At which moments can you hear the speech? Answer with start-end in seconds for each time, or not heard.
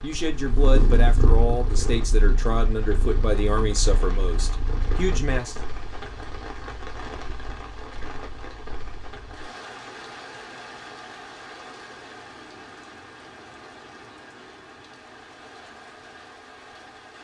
0.0-5.6.